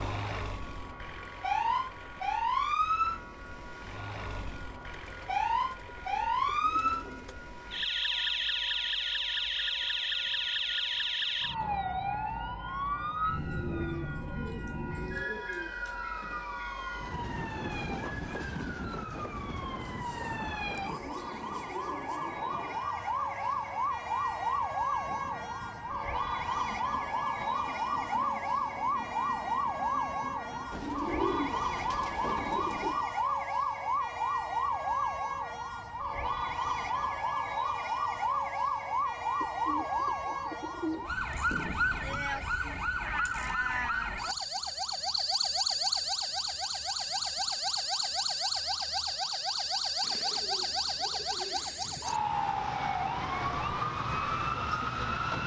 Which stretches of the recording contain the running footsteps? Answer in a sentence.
The running footsteps can't be heard in this clip.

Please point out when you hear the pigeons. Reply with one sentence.
You can hear the pigeons from 4.8 to 7.4 s, from 13.5 to 16.0 s, from 19.8 to 22.4 s, from 30.7 to 33.0 s, from 39.4 to 41.1 s and from 50.0 to 52.0 s.